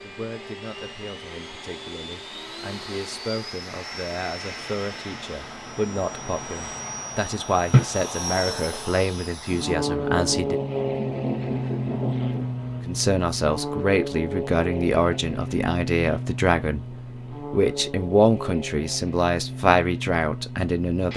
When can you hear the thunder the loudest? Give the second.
12 s.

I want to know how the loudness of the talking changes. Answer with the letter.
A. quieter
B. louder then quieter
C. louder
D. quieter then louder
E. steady
C.